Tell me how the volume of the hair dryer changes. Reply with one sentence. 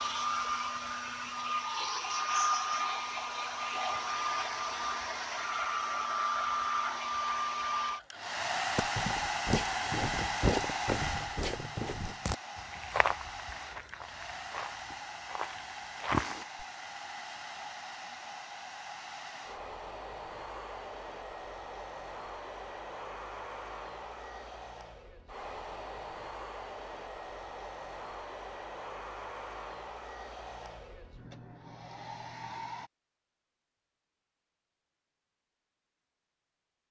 The loudness of the hair dryer goes down.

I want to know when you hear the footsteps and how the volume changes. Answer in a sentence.
The footsteps can be heard from 8.8 to 16.6 s, getting quieter then louder.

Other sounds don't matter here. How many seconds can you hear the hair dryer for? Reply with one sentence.
The hair dryer can be heard for 33 seconds in total.